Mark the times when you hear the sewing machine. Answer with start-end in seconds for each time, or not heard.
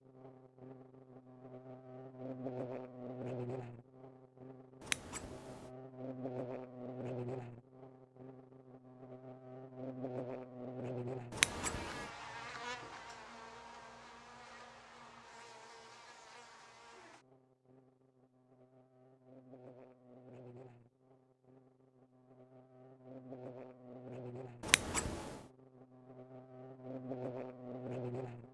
not heard.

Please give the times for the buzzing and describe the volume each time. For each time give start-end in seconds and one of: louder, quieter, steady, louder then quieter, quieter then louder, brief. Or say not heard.
0.0-28.5 quieter then louder.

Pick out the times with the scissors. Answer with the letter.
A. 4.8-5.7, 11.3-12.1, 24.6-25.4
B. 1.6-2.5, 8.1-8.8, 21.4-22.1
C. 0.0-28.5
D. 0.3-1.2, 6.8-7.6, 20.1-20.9
A.